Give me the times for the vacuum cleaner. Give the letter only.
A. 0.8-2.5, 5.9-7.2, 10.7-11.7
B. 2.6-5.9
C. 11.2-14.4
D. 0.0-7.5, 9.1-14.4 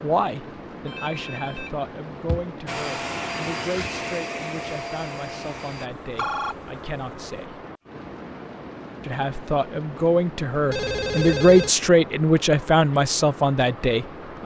B.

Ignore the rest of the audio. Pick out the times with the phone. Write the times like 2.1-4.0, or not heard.
0.8-2.5, 5.9-7.2, 10.7-11.7.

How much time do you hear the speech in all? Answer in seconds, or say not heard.
13 s.